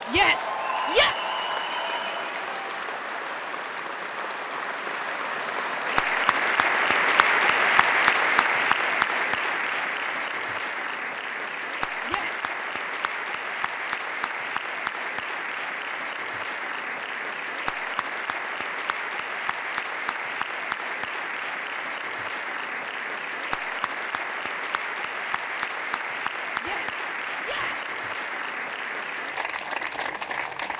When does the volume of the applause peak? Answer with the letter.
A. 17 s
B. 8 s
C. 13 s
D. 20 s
B.